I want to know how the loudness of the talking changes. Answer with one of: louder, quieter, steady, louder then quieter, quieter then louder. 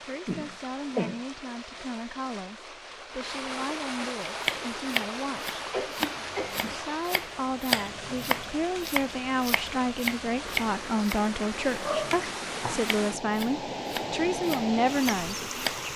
louder.